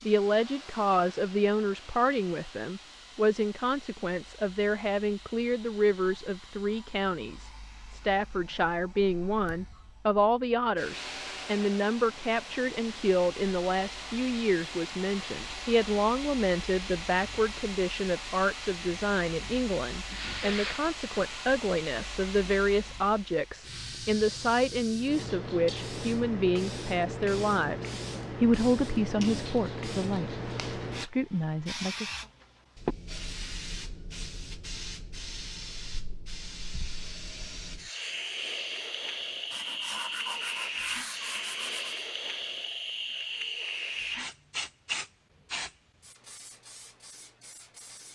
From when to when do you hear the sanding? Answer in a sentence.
The sanding can be heard from 20.0 to 20.9 s and from 39.5 to 42.0 s.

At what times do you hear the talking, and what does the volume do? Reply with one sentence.
You can hear the talking from 0.0 to 32.1 s, at a steady volume.